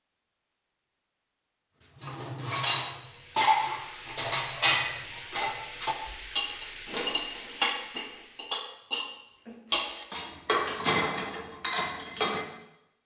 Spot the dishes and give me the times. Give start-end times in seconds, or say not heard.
1.9-12.4.